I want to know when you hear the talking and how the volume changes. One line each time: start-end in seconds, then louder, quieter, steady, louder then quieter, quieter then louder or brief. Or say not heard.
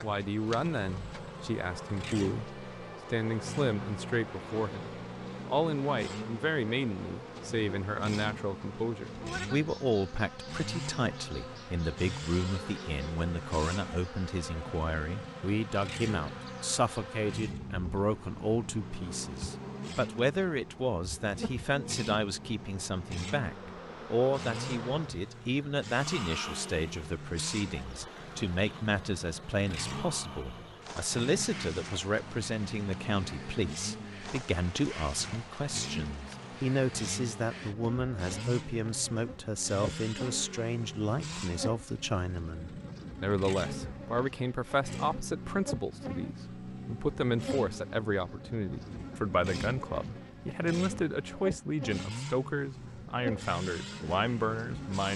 0.0-55.1 steady.